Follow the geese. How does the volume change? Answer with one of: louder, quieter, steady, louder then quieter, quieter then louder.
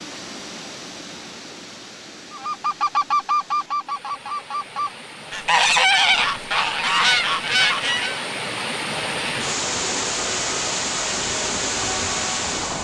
quieter then louder.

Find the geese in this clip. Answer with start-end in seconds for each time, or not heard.
2.3-8.2.